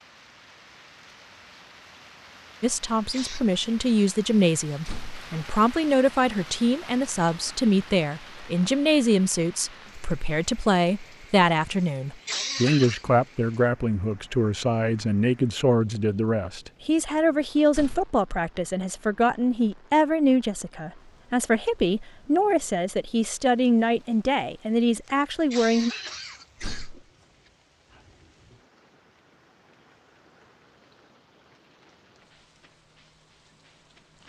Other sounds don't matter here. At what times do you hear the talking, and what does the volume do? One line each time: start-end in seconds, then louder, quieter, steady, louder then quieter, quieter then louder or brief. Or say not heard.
2.6-25.9 steady.